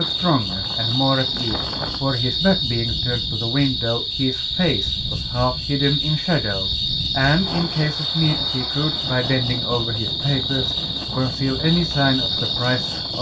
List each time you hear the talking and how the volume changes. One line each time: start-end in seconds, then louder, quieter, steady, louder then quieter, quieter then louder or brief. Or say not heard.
0.0-13.1 steady.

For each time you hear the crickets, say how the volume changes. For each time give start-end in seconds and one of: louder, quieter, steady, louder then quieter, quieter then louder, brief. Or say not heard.
0.0-13.1 steady.